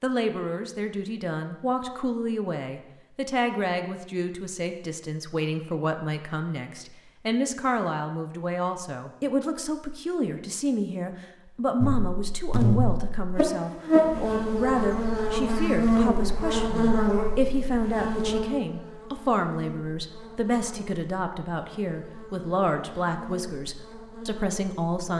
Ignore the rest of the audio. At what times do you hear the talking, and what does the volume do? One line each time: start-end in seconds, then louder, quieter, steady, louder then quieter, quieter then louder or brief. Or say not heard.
0.0-25.1 steady.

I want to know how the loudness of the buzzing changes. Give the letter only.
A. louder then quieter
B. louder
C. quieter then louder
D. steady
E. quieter
E.